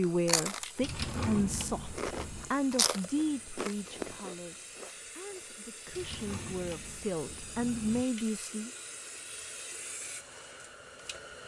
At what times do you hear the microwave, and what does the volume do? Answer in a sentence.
The microwave can't be heard in this clip.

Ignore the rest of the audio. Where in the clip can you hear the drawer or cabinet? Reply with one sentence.
The drawer or cabinet can be heard from 0.8 to 2.5 s and from 5.9 to 8.1 s.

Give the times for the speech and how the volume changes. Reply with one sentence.
The speech can be heard from 0.0 to 8.7 s, getting quieter then louder.